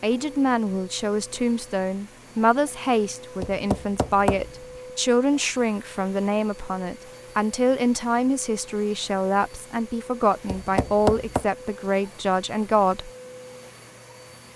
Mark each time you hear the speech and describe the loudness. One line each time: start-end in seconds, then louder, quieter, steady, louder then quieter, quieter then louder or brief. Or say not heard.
0.0-13.1 steady.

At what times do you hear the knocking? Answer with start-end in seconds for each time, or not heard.
3.4-4.5, 10.4-11.4.